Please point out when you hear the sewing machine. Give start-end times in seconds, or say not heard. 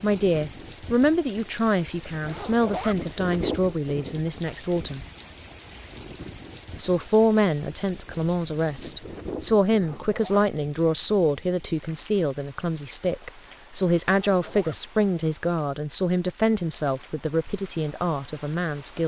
not heard.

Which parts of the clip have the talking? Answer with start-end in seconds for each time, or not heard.
0.0-5.0, 6.8-19.0.